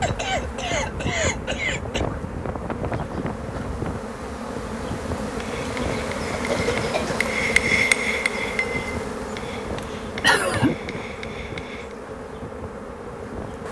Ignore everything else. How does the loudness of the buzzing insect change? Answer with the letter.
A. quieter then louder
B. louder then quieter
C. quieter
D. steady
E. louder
B.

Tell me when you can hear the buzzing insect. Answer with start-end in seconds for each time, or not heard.
0.0-13.6.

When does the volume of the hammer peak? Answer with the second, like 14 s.
8 s.